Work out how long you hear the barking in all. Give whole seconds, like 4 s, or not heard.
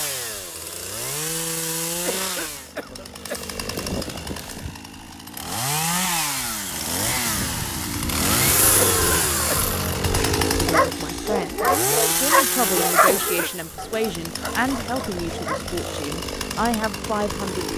5 s.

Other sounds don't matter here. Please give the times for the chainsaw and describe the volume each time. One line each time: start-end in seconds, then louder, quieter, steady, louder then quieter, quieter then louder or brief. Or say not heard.
0.0-17.7 louder then quieter.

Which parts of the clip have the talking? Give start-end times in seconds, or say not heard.
10.6-17.7.